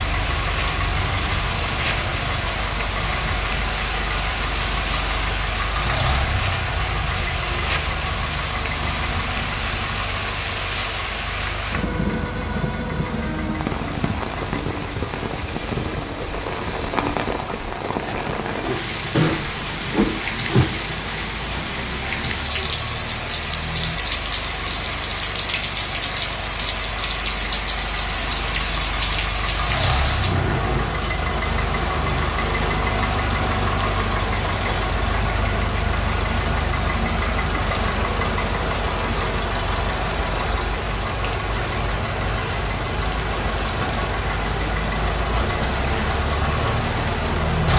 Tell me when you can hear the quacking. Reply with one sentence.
The quacking can't be heard in this clip.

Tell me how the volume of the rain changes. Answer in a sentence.
The loudness of the rain stays about the same.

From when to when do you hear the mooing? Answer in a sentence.
The mooing can't be heard in this clip.